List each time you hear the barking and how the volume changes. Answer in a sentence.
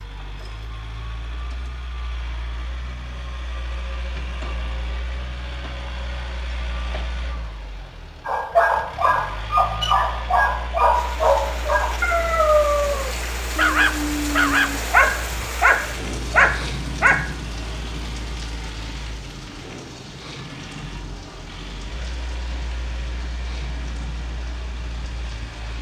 The barking can be heard from 8.2 to 17.3 s, at a steady volume.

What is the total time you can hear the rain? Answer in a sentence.
The rain can be heard for 15 seconds in total.